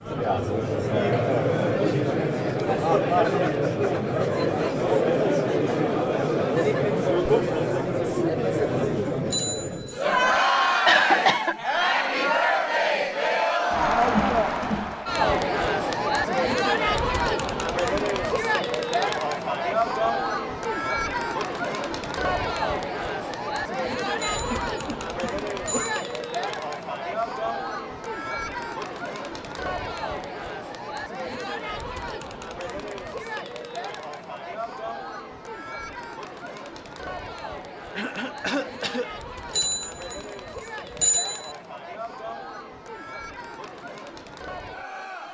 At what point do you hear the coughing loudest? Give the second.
11 s.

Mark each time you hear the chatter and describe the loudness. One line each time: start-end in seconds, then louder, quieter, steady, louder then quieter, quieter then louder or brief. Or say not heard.
0.0-45.2 quieter.